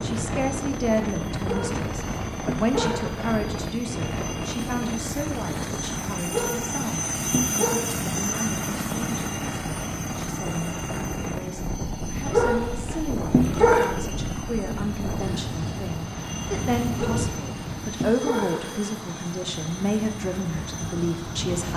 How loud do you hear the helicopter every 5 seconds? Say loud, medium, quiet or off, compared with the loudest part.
medium, loud, medium, medium, medium.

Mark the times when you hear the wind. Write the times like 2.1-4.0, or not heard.
0.0-21.7.